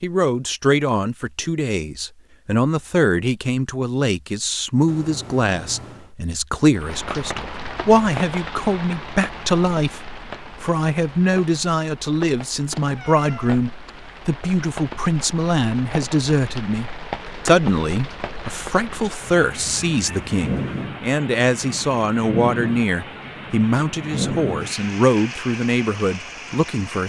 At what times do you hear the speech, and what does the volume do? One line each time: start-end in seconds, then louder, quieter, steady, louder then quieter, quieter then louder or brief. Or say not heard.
0.0-27.0 steady.